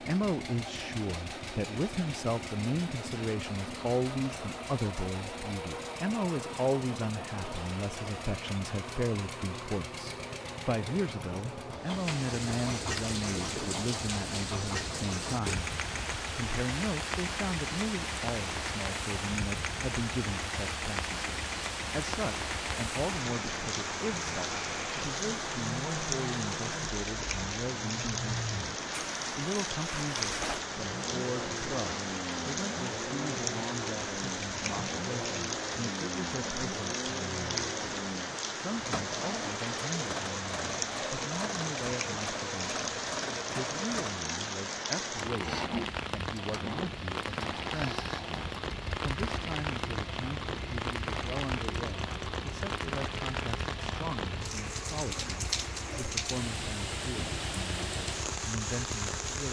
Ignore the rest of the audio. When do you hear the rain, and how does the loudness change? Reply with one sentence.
The rain can be heard from 11.8 to 59.4 s, at a steady volume.